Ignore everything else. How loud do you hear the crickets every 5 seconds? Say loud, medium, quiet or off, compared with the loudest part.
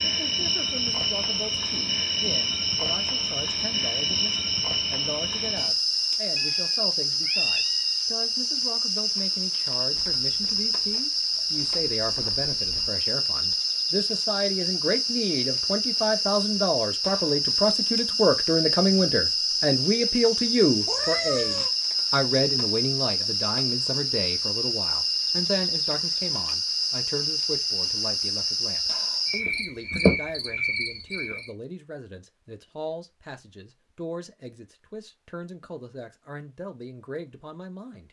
loud, loud, loud, loud, loud, loud, loud, off.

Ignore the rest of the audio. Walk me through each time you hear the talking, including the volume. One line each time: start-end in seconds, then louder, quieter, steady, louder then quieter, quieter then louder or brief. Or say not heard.
0.0-38.0 louder then quieter.